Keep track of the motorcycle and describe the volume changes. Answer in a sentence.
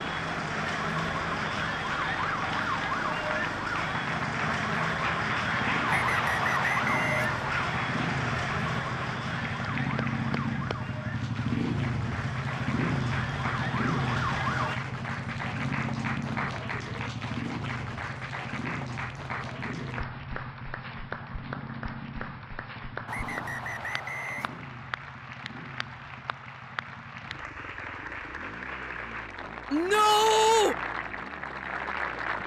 The loudness of the motorcycle goes up, then down.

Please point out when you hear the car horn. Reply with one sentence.
You can't hear the car horn here.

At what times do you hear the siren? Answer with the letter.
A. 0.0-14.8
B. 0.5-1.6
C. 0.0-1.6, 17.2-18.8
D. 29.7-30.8
A.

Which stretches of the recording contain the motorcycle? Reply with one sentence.
The motorcycle can be heard from 0.0 to 32.4 s.